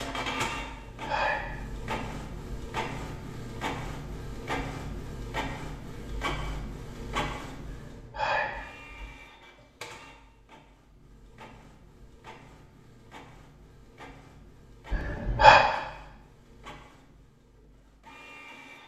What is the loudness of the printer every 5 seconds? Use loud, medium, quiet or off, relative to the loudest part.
loud, loud, quiet, quiet.